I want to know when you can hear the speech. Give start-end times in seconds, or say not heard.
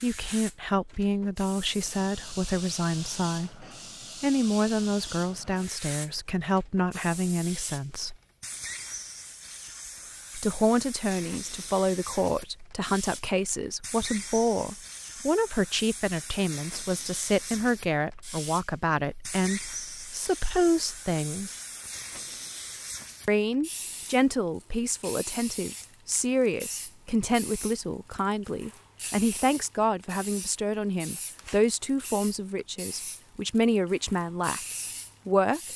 0.0-8.2, 10.3-21.6, 23.2-35.6.